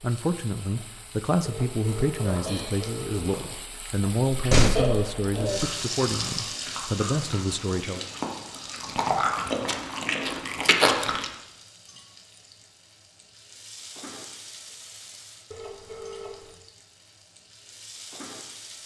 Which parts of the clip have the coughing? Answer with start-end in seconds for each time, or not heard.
not heard.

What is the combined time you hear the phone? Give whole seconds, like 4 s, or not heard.
3 s.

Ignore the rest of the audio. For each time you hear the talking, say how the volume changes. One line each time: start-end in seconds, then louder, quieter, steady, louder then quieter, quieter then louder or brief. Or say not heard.
0.0-8.1 steady.